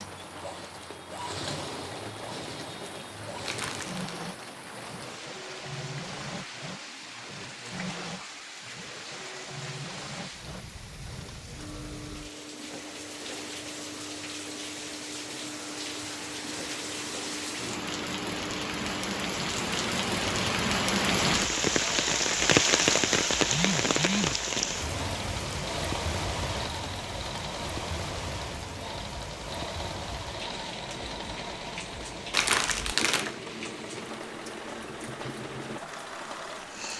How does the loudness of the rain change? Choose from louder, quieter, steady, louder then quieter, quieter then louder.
louder then quieter.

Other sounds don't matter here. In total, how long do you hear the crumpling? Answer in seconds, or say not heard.
2 s.